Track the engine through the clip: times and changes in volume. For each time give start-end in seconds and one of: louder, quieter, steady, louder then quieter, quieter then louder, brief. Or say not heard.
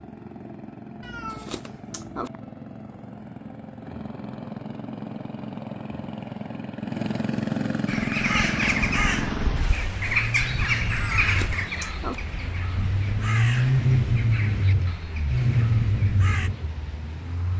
0.0-17.5 louder.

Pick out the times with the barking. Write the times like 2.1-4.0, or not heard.
not heard.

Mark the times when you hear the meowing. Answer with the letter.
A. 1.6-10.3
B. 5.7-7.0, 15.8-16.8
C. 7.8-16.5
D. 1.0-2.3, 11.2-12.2
D.